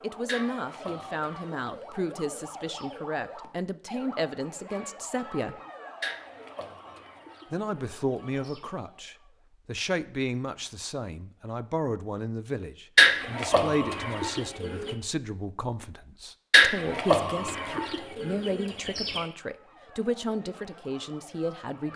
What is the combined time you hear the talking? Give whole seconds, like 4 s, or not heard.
20 s.